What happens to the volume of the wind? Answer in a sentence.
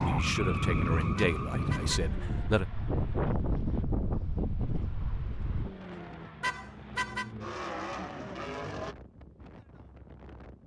The volume of the wind goes down.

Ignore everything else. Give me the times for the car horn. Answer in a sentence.
The car horn can be heard from 1.1 to 2.1 s and from 6.4 to 7.3 s.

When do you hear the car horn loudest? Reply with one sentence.
The loudest moment of the car horn is at 7 seconds.